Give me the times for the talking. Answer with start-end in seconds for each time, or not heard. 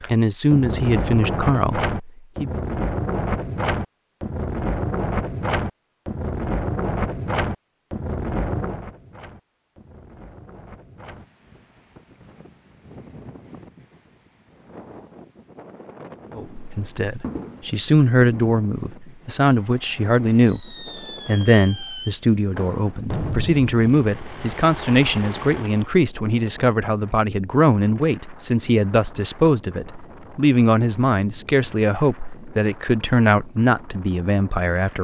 0.1-2.5, 16.4-35.0.